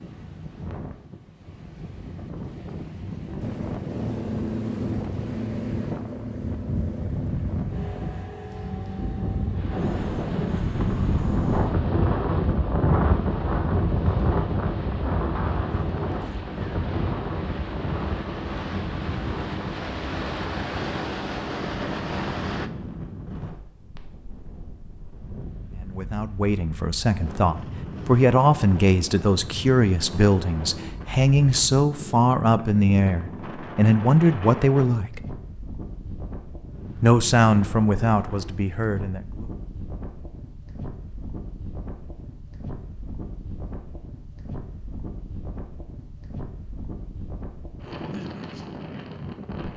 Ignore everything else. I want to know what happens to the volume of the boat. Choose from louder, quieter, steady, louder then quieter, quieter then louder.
quieter then louder.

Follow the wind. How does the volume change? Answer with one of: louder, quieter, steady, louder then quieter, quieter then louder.
louder then quieter.